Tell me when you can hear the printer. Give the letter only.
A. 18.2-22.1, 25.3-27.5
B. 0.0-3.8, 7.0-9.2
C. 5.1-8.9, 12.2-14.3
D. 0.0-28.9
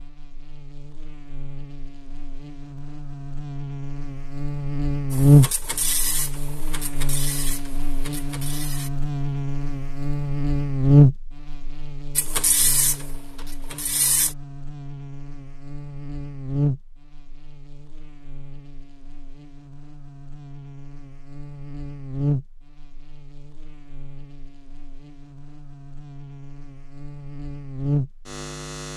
C.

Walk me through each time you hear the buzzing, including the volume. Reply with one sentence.
You can hear the buzzing from 0.0 to 28.9 s, getting quieter.